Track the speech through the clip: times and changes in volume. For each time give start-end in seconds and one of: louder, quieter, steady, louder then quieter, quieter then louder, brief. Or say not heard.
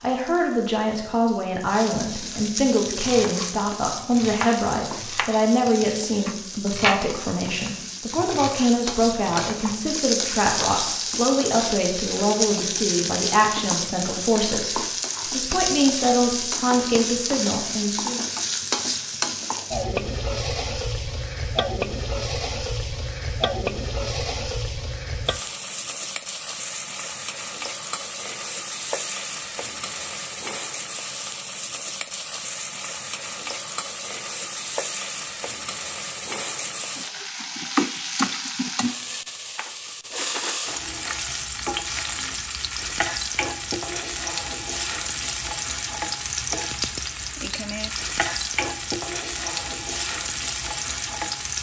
0.0-18.2 steady.